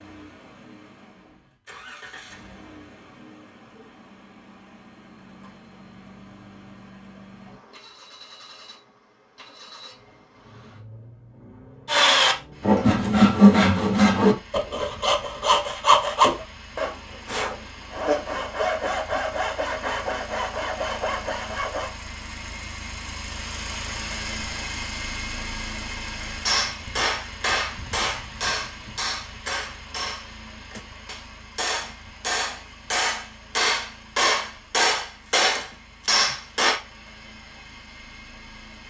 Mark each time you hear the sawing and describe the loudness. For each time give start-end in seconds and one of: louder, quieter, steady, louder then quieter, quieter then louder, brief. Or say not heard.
11.8-21.9 quieter.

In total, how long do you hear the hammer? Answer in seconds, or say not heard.
10 s.